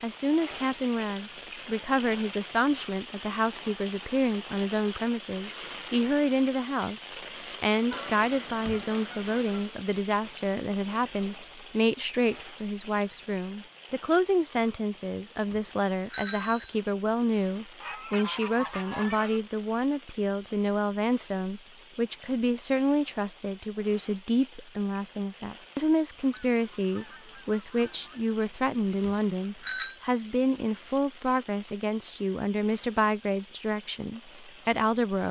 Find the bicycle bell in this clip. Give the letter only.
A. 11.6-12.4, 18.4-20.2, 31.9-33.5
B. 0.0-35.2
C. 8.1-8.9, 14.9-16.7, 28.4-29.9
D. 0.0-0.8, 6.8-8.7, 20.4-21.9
C.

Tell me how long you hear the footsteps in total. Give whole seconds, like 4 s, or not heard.
not heard.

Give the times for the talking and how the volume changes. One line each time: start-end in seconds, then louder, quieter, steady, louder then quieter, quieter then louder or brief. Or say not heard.
0.0-35.2 steady.